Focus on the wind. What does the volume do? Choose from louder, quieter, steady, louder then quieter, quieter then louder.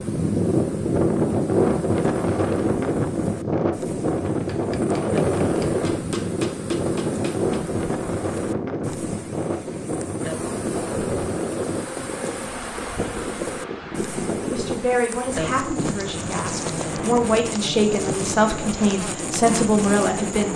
quieter.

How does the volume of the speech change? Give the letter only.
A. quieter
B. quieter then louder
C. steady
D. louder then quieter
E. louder
B.